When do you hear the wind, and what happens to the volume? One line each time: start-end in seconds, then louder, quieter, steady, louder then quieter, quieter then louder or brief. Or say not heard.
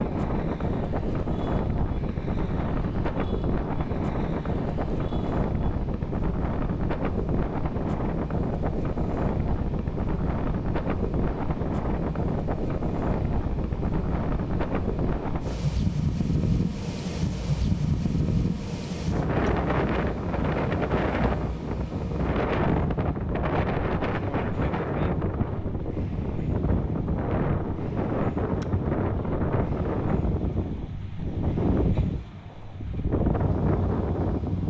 0.0-34.6 steady.